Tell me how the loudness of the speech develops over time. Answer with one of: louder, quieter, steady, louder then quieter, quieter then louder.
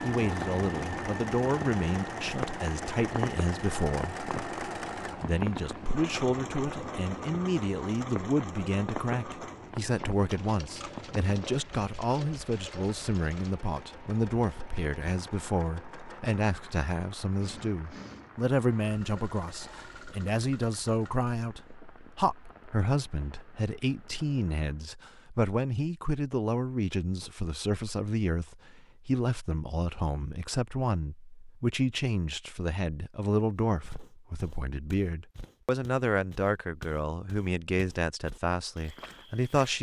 steady.